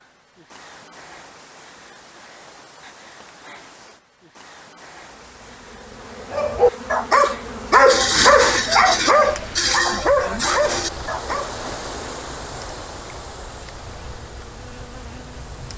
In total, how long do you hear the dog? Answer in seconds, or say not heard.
5 s.